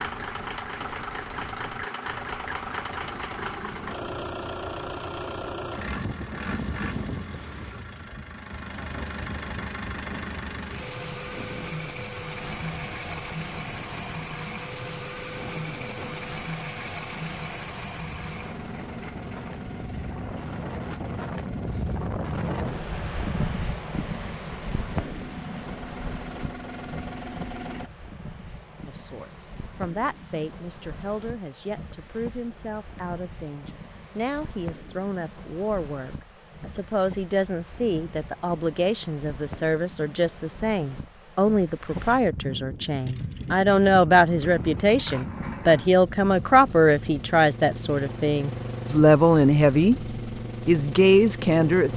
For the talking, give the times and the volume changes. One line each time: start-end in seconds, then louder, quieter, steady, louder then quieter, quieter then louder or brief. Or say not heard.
28.9-50.0 louder
50.6-51.9 brief.